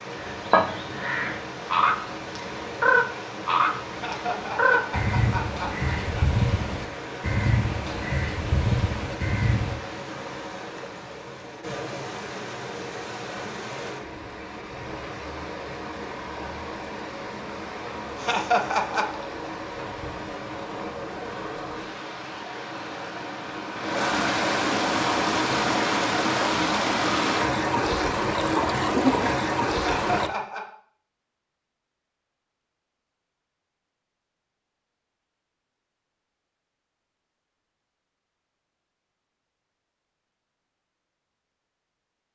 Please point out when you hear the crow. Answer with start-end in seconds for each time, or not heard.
0.1-9.8.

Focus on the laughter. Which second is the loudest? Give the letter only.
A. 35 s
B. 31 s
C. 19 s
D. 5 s
C.